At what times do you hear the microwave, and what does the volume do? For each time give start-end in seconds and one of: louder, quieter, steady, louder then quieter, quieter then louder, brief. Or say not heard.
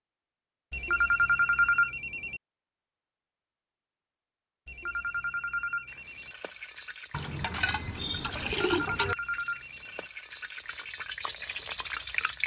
not heard.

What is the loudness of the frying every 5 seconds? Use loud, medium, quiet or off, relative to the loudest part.
off, medium, loud.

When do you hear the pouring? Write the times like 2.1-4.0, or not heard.
7.1-9.2.